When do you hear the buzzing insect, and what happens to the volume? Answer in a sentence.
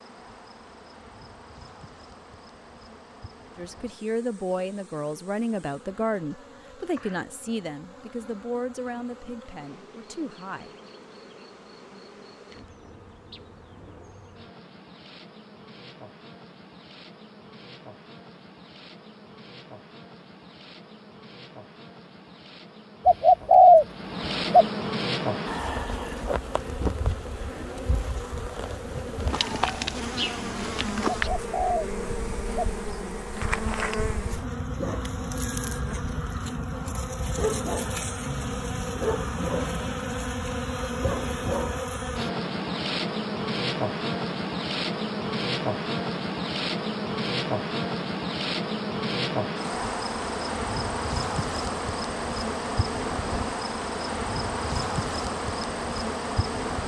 You can hear the buzzing insect from 0.0 to 56.8 s, getting louder.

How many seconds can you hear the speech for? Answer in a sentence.
The speech can be heard for 7 seconds in total.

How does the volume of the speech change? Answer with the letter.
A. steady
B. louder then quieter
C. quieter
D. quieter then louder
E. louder
C.